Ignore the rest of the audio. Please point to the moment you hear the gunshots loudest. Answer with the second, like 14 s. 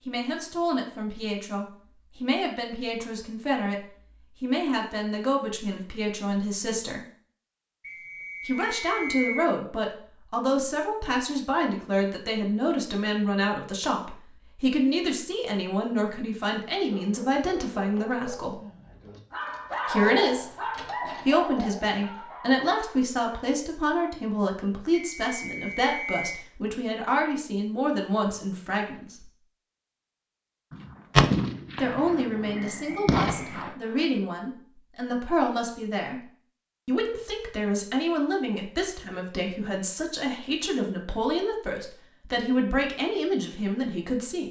31 s.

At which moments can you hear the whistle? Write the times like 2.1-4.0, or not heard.
7.8-9.5, 24.9-26.4, 32.5-34.0.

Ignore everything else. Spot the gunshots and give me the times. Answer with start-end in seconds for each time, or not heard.
30.7-33.8.